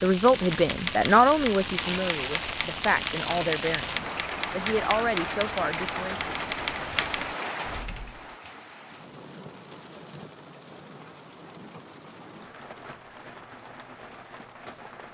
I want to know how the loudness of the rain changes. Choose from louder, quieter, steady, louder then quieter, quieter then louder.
quieter.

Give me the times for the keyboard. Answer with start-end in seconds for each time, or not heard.
0.6-8.3.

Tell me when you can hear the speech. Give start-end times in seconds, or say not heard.
0.0-6.3.